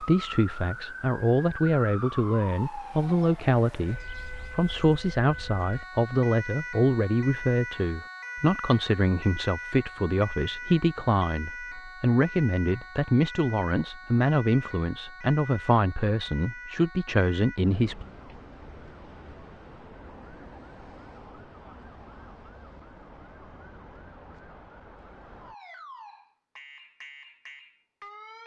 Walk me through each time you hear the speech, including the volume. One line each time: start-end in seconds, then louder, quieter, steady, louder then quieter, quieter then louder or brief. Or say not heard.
0.0-18.1 steady.